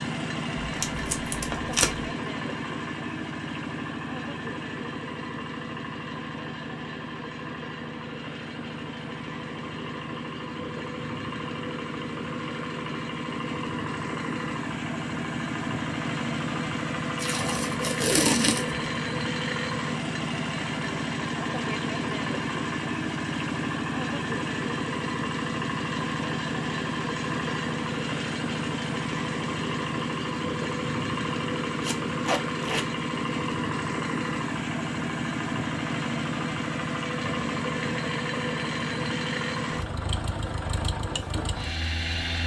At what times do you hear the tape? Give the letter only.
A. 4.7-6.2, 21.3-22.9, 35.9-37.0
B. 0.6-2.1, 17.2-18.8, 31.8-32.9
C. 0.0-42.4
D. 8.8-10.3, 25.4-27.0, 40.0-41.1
B.